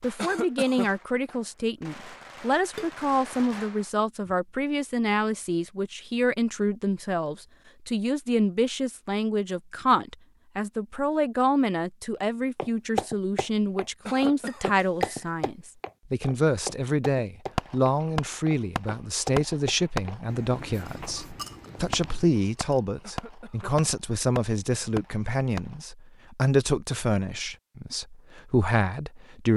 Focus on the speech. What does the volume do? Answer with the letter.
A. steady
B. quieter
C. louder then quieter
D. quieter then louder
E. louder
A.